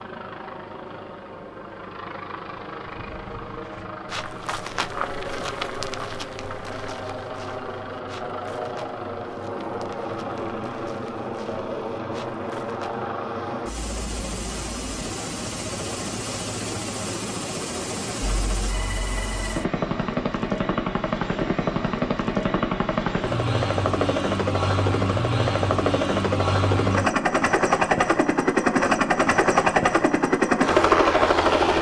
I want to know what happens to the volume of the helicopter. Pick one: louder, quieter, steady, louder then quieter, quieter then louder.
louder.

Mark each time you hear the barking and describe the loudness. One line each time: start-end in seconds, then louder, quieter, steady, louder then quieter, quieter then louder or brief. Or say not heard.
not heard.